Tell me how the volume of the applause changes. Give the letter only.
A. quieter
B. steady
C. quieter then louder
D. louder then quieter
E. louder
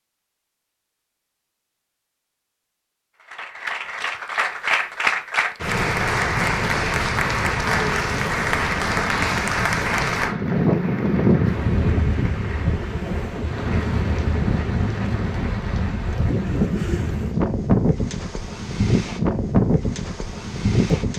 A.